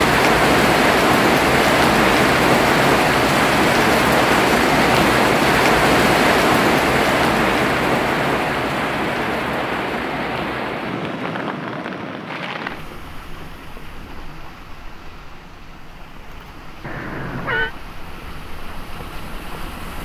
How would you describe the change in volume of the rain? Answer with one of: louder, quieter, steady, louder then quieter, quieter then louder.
quieter.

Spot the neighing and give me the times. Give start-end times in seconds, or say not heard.
16.8-17.8.